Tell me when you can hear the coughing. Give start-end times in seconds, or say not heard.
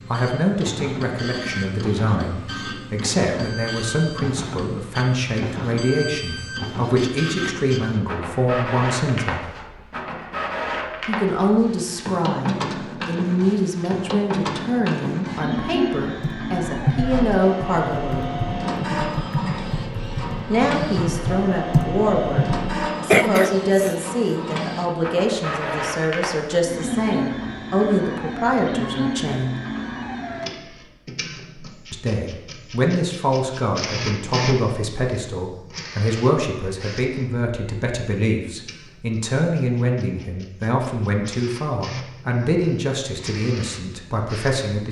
23.1-23.9.